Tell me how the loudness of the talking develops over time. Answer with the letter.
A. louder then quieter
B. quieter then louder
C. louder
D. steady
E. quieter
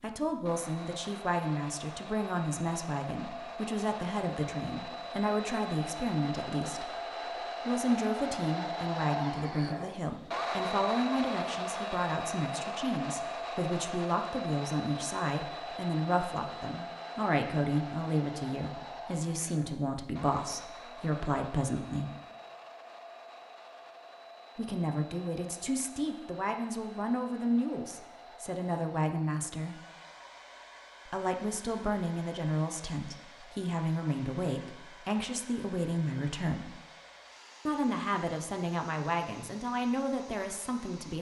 D.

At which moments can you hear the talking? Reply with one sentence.
You can hear the talking from 0.0 to 22.1 s, from 24.6 to 29.8 s, from 31.1 to 36.8 s and from 37.6 to 41.1 s.